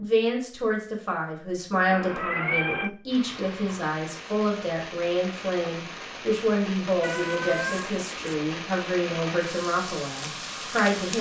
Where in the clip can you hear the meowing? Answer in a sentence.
You can hear the meowing from 1.9 to 2.9 s and from 7.0 to 8.2 s.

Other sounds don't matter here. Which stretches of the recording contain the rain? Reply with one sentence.
You can hear the rain from 3.0 to 11.1 s.